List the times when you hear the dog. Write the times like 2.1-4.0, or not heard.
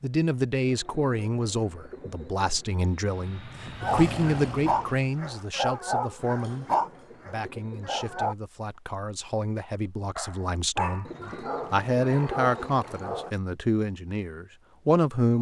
3.8-8.3, 10.2-13.3.